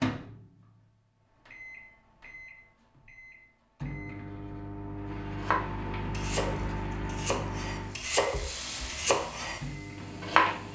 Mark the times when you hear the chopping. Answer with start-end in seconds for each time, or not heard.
5.1-10.6.